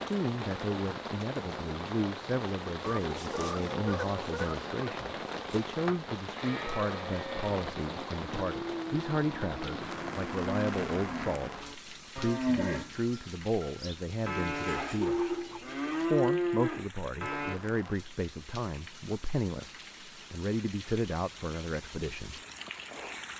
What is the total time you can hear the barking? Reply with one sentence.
The barking can't be heard in this clip.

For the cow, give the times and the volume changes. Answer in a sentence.
The cow can be heard from 6.3 to 17.6 s, getting louder.